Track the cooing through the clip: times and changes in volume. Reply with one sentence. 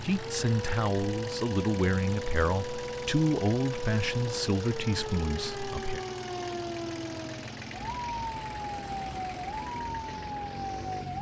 The cooing can't be heard in this clip.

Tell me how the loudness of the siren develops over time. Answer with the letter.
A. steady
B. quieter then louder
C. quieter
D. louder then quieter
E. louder
A.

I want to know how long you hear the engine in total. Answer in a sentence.
You can hear the engine for 11 seconds altogether.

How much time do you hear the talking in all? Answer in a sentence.
You can hear the talking for 6 seconds altogether.